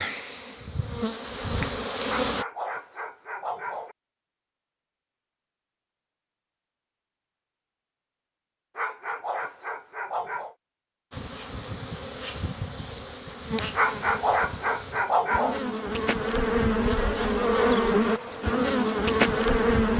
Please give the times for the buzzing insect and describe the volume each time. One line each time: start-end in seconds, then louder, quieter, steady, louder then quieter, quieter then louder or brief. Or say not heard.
0.0-2.5 brief
11.1-19.9 louder.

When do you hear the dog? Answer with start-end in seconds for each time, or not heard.
2.0-4.0, 8.8-10.6, 13.7-15.6.